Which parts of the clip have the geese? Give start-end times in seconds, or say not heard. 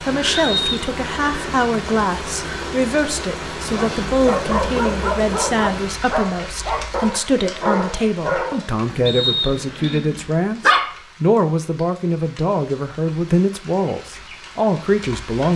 not heard.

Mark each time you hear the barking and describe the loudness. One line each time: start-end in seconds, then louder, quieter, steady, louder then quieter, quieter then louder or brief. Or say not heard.
3.6-11.0 quieter.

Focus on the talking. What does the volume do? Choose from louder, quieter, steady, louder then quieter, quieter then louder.
steady.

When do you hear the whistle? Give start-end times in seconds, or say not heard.
0.3-0.9, 9.1-10.0.